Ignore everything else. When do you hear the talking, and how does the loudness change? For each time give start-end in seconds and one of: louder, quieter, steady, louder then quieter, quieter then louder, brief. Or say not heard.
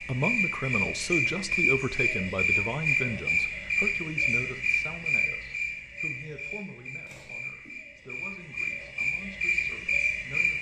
0.0-10.5 quieter.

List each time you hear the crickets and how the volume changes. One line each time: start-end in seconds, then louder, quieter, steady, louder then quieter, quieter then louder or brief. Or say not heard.
0.0-10.5 quieter then louder.